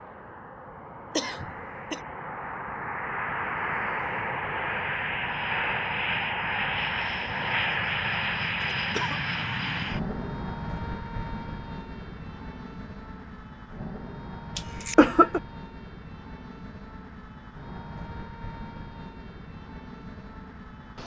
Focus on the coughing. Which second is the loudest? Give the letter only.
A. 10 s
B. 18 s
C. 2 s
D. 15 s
D.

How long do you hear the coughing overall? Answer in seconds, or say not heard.
2 s.